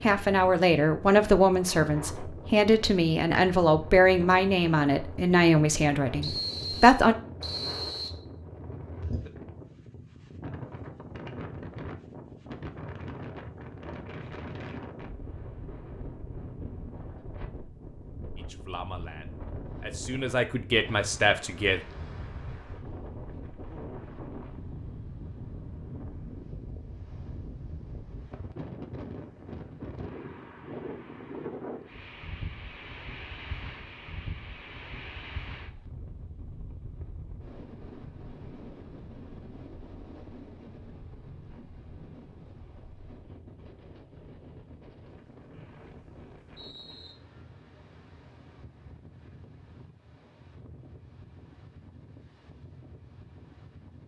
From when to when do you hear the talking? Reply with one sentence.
You can hear the talking from 0.0 to 7.2 s and from 18.4 to 21.8 s.